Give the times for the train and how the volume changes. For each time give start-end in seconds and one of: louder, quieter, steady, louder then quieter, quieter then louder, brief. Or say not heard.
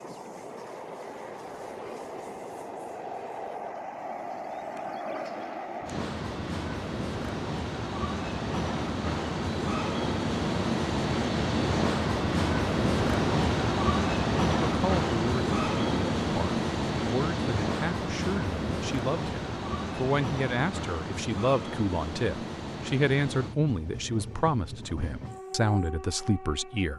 0.0-26.9 louder then quieter.